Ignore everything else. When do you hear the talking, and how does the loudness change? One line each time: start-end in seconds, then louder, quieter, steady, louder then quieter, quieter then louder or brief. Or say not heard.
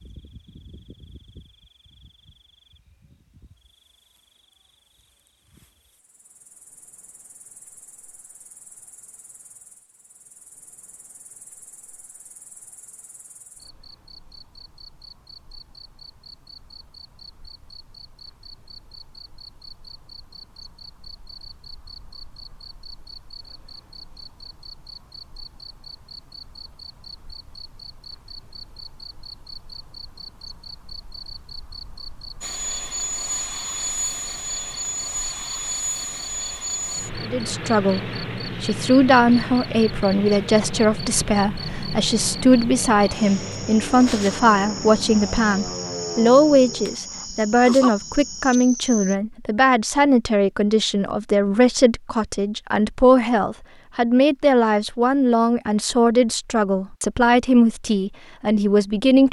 37.2-59.2 steady.